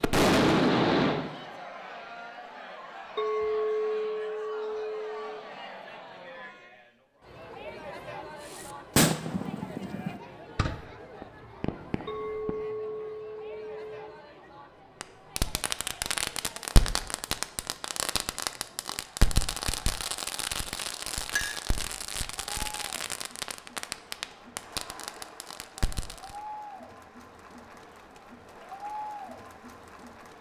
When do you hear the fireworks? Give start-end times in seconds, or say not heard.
0.0-1.6, 8.5-12.7, 15.0-26.4.